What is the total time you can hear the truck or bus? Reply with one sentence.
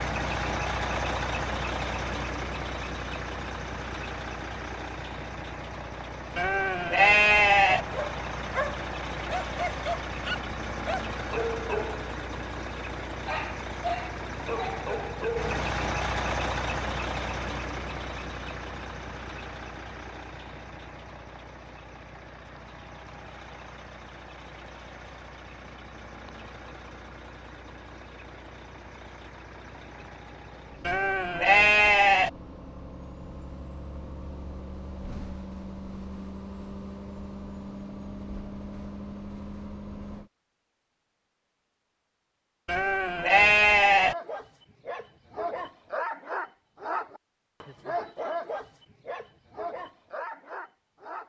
The truck or bus can be heard for 40 seconds in total.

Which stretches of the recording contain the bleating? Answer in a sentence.
The bleating can be heard from 6.3 to 7.8 s, from 30.9 to 32.3 s and from 42.6 to 44.1 s.